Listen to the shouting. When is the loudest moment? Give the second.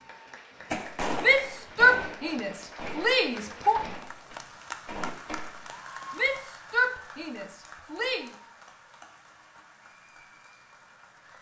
2 s.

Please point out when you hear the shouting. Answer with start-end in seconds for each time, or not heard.
1.2-3.8, 6.2-8.3.